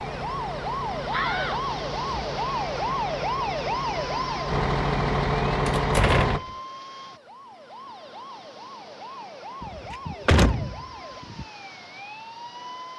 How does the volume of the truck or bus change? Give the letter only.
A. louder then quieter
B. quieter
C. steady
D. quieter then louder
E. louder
E.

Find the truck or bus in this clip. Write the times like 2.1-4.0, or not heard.
0.0-6.4.